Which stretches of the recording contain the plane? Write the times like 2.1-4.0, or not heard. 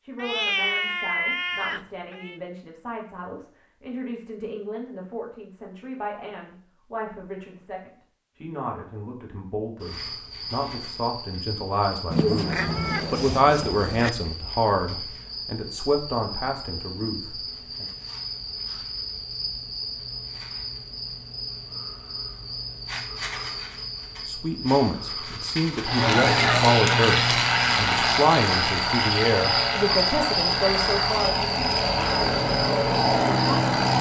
25.8-33.9.